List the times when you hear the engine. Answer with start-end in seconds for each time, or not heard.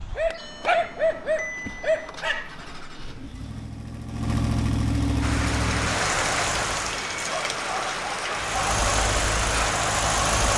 0.0-7.0, 8.3-10.5.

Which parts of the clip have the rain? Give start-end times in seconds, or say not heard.
5.2-10.2.